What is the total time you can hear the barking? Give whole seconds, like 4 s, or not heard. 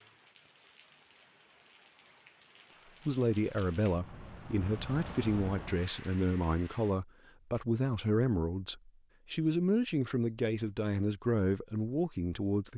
not heard.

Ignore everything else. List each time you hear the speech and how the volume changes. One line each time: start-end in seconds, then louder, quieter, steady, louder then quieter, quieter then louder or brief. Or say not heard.
3.0-12.7 steady.